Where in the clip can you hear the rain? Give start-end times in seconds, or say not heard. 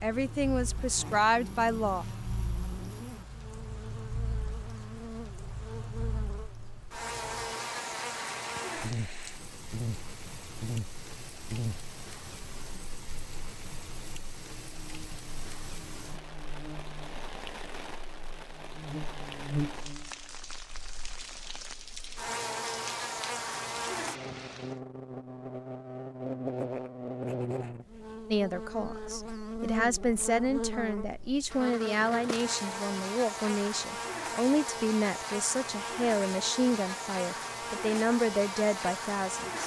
0.0-24.8.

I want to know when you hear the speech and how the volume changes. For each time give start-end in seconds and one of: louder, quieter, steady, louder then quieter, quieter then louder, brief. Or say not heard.
0.0-2.0 brief
28.3-39.6 steady.